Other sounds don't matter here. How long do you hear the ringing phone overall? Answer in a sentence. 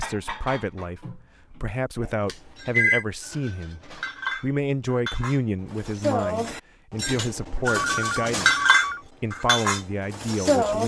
The ringing phone can be heard for 2 seconds in total.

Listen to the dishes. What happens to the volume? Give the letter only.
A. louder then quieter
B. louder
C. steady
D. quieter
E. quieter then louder
B.